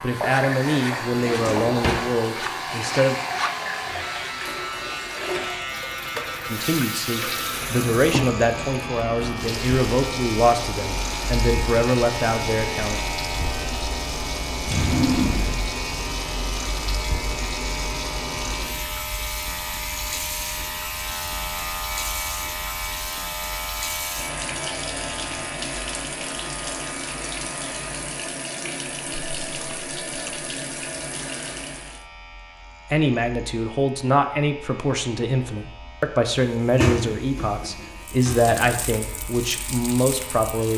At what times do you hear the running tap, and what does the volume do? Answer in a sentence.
The running tap can be heard from 0.0 to 32.0 s, at a steady volume; and briefly from 38.2 to 40.7 s.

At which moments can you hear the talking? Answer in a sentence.
The talking can be heard from 0.0 to 3.1 s, from 6.5 to 13.0 s and from 32.9 to 40.7 s.